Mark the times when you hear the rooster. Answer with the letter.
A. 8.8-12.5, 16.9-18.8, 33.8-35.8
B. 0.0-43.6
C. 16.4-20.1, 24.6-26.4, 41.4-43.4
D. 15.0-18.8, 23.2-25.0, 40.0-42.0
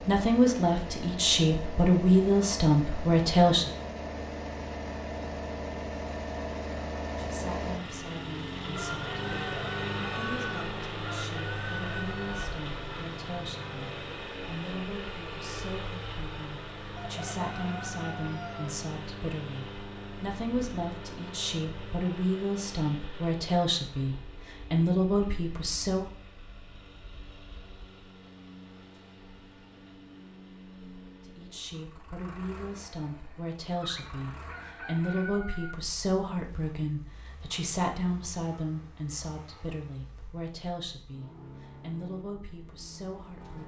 A.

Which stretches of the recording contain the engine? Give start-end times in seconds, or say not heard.
0.0-43.6.